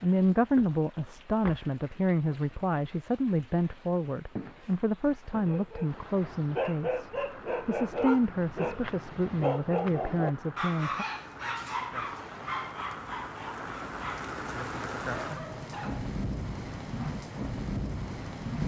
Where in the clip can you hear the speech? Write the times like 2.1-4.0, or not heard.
0.0-11.1.